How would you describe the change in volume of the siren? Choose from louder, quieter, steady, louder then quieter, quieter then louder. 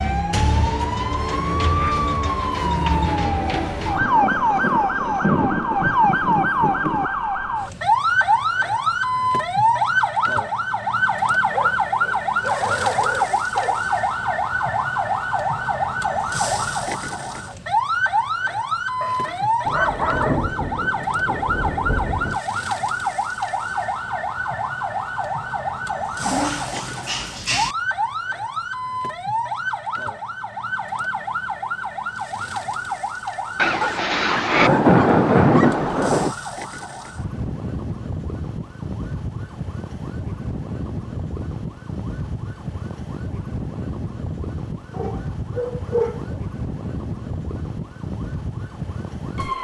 quieter.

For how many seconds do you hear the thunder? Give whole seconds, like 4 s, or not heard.
9 s.